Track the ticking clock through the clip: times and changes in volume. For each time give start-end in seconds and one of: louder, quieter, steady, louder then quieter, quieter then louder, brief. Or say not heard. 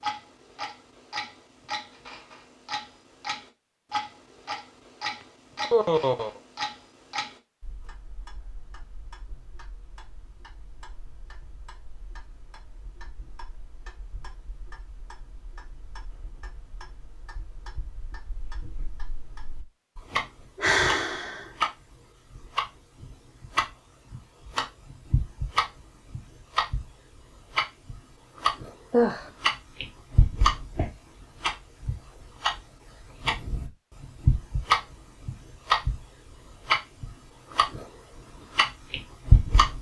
0.0-39.7 quieter then louder.